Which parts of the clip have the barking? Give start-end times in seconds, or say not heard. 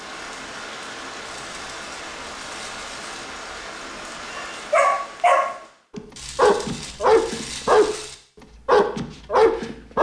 4.3-8.0, 8.7-9.9.